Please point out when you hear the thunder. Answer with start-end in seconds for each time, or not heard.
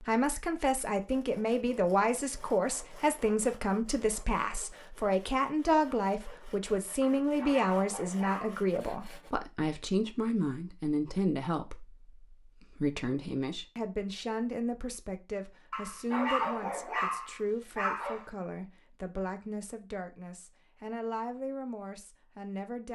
not heard.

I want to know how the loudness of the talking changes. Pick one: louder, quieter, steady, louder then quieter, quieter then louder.
quieter.